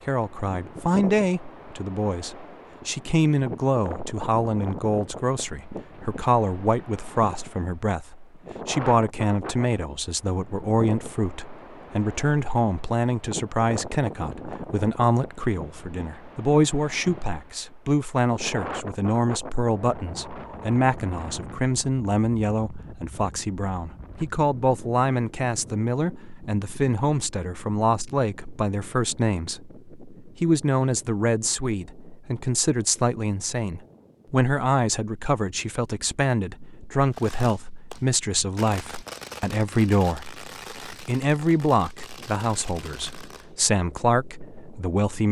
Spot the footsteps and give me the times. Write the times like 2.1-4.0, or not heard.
not heard.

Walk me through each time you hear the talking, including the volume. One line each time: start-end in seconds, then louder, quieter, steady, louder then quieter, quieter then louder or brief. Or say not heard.
0.1-45.2 steady.